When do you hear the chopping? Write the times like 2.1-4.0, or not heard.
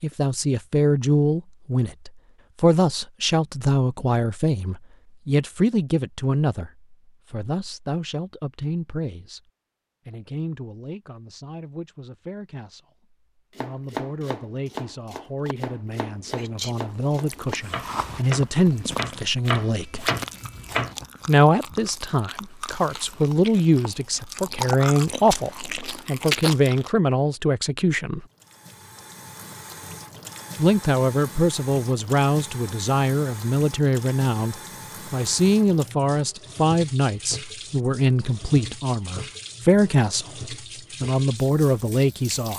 13.5-20.9.